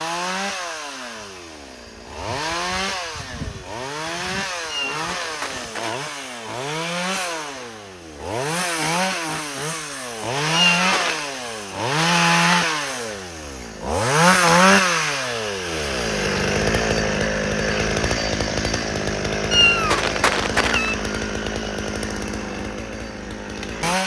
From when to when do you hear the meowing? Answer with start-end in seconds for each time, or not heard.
4.7-6.0, 10.5-11.2, 19.5-20.9.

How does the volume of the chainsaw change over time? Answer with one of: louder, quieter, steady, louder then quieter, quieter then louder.
louder then quieter.